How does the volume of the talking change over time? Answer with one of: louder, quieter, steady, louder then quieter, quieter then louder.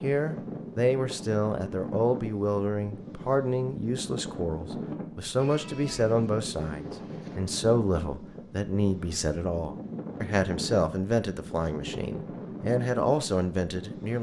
steady.